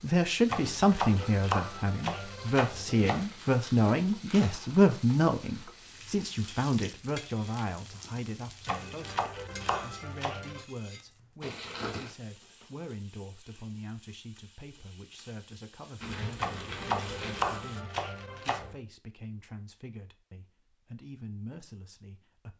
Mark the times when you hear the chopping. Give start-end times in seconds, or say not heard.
0.5-3.2, 8.7-10.7, 16.4-18.8.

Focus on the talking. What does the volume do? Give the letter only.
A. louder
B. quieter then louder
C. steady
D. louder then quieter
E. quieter
E.